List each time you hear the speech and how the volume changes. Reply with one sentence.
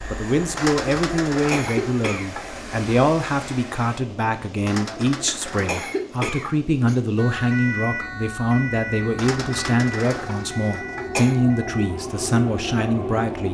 The speech can be heard from 0.1 to 13.4 s, at a steady volume.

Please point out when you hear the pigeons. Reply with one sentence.
You can hear the pigeons from 0.6 to 2.5 s, from 4.7 to 6.6 s and from 9.2 to 11.1 s.